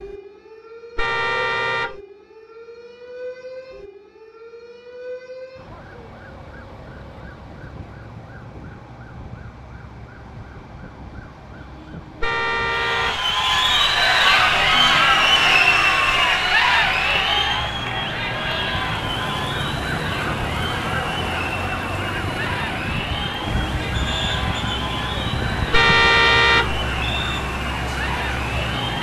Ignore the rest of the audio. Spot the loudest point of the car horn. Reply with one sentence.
The loudest moment of the car horn is at 26 seconds.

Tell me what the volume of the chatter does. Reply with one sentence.
The volume of the chatter goes down.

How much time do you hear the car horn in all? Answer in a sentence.
You can hear the car horn for 3 seconds altogether.